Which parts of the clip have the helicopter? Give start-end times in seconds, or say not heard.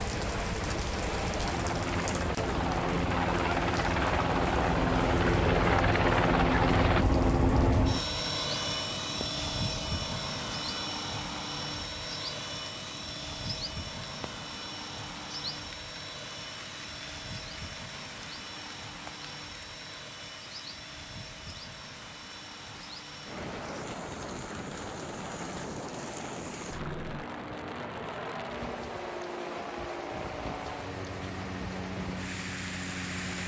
0.0-33.4.